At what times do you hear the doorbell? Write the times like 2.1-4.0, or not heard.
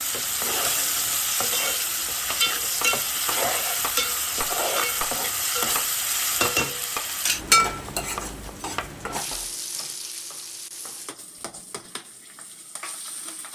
not heard.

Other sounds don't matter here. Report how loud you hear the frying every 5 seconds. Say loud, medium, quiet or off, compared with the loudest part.
loud, loud, quiet.